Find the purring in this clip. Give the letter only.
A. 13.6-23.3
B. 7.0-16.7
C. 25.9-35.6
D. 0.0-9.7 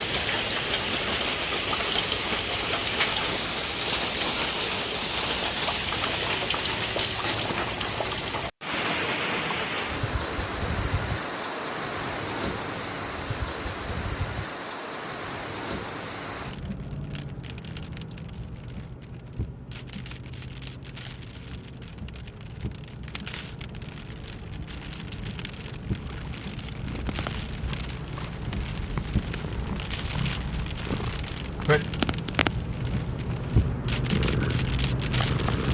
C.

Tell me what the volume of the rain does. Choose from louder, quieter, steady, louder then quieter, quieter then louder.
quieter then louder.